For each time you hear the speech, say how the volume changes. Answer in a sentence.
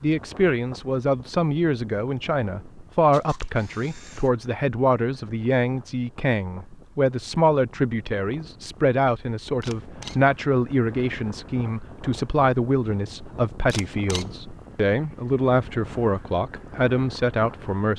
The speech can be heard from 0.0 to 17.9 s, at a steady volume.